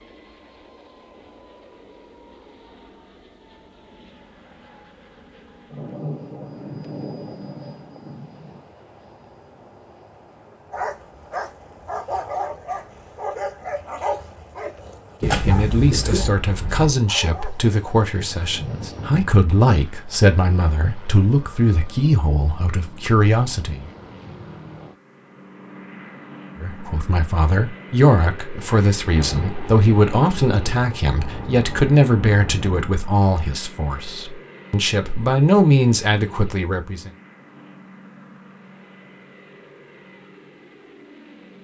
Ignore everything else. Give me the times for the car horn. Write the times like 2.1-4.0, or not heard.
15.2-16.9.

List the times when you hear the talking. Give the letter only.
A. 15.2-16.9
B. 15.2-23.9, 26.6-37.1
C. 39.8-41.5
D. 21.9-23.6
B.